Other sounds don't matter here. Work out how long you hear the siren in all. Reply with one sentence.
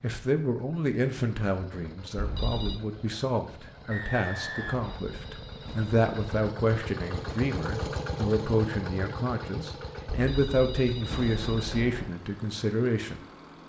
You can't hear the siren here.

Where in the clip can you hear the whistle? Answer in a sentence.
The whistle can be heard from 3.9 to 5.0 s.